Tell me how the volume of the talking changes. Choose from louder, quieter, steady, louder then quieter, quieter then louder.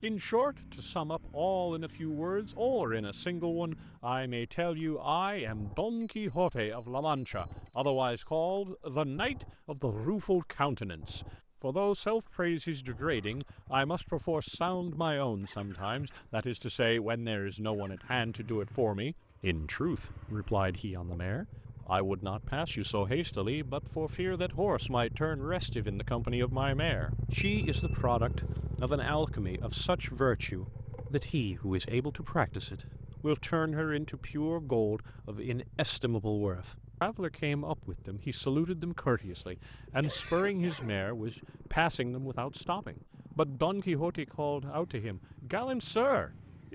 steady.